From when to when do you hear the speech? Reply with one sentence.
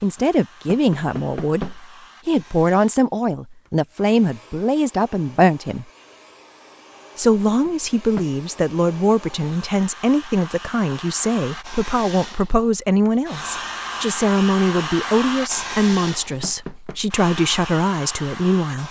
The speech can be heard from 0.0 to 5.8 s and from 7.2 to 18.8 s.